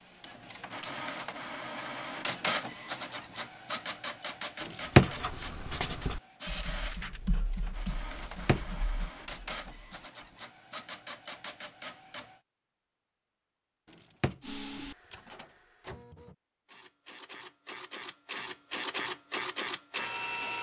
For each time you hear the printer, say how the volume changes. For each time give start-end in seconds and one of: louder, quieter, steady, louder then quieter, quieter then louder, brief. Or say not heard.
0.0-12.4 quieter
14.4-20.5 louder.